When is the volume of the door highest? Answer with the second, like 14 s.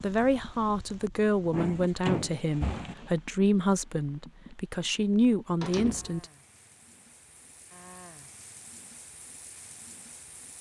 2 s.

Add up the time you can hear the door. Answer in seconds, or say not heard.
2 s.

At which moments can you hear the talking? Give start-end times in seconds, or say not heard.
0.0-6.2.